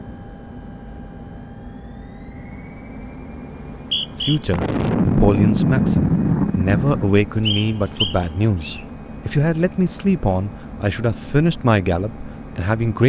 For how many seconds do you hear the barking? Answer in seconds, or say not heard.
not heard.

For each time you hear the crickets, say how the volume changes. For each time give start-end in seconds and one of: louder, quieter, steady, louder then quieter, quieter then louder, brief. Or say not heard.
not heard.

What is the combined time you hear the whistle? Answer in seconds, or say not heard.
2 s.